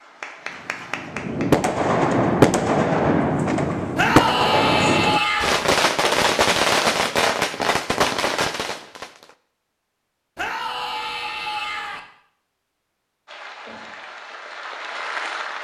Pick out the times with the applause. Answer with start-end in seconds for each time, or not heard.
0.0-1.7, 13.2-15.5.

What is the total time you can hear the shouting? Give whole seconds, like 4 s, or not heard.
3 s.